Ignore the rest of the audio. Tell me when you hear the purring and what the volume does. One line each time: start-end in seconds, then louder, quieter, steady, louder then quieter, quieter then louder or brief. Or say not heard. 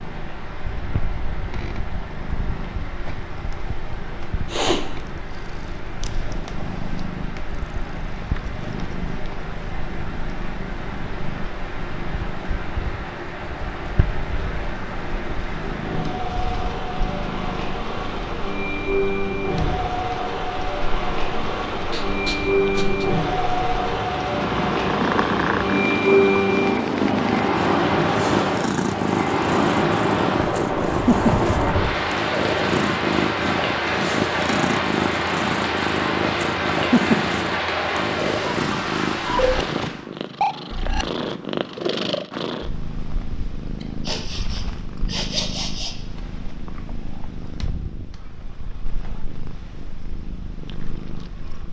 0.0-51.6 louder then quieter.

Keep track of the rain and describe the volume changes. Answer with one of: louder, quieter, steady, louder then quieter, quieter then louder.
louder.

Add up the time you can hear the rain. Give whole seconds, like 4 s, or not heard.
40 s.